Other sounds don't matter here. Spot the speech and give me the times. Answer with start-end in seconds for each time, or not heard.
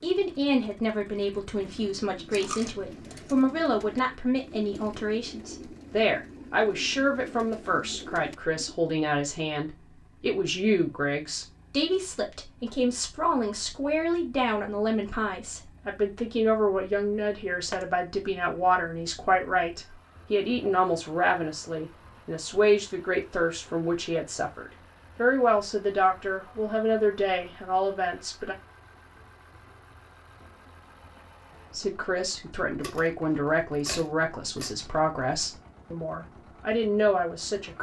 0.0-28.6, 31.7-37.7.